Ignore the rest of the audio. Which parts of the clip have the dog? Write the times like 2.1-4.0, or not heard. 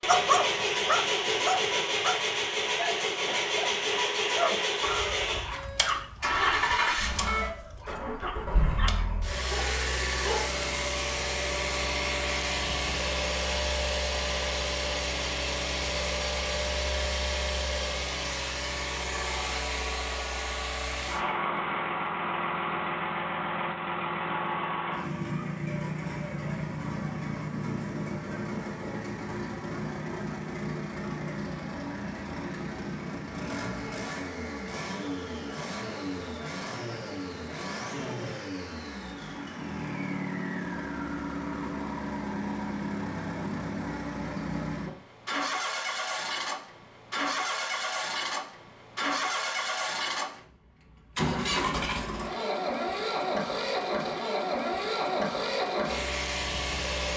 0.1-10.6.